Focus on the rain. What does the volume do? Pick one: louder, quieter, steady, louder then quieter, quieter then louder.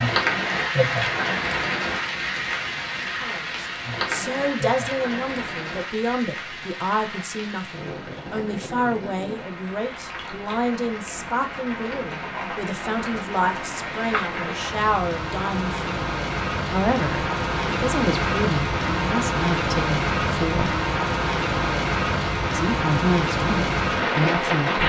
quieter then louder.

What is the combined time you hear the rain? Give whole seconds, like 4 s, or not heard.
25 s.